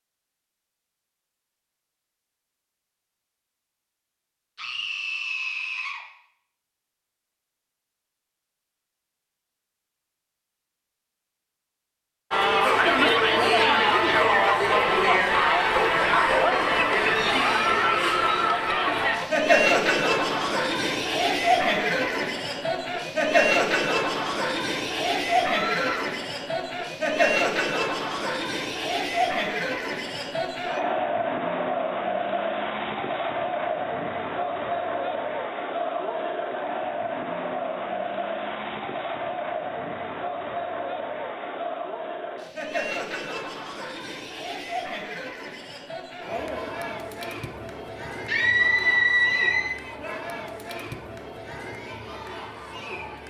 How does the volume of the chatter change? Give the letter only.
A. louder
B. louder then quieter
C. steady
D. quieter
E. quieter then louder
D.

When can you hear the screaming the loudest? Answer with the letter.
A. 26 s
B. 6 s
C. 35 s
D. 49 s
D.